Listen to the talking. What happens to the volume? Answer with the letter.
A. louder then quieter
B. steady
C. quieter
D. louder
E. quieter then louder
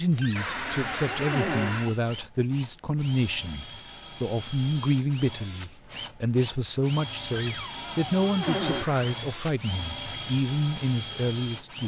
B.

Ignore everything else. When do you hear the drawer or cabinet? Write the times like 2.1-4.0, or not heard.
0.2-1.7, 7.3-8.8.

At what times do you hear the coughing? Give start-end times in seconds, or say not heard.
0.3-1.9, 8.4-9.2.